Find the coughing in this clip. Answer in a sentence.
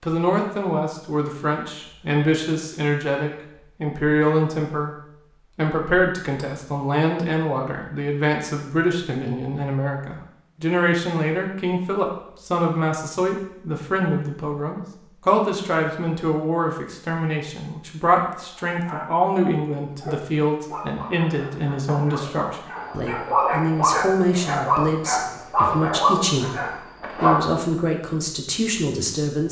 You can't hear the coughing here.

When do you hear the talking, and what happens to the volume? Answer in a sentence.
You can hear the talking from 0.0 to 29.4 s, at a steady volume.